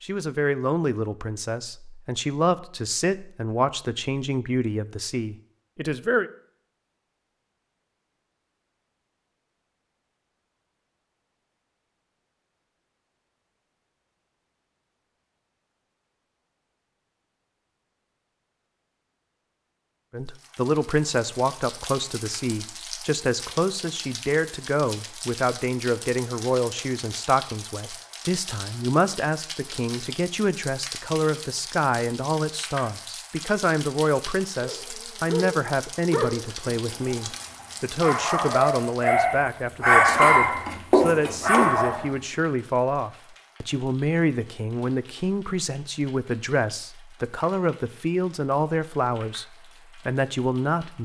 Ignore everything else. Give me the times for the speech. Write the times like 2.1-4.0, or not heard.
0.0-6.3, 20.1-51.0.